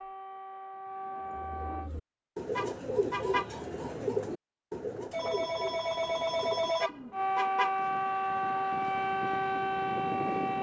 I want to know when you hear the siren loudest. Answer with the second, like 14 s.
8 s.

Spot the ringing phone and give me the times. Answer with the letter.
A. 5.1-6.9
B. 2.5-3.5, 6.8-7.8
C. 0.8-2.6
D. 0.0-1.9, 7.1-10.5
A.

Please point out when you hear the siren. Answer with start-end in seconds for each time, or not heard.
0.0-1.9, 7.1-10.5.